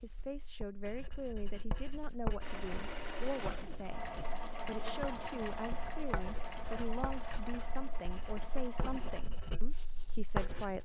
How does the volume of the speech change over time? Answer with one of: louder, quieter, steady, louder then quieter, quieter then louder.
steady.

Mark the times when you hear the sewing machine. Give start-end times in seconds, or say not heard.
2.4-9.2.